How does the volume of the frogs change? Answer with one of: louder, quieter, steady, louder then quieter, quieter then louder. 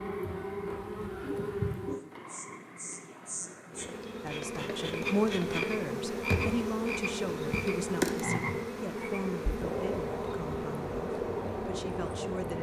louder.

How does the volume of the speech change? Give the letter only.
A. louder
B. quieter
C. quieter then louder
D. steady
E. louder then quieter
B.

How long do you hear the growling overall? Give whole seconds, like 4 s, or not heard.
2 s.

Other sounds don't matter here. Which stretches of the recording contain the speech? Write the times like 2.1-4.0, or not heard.
4.2-12.5.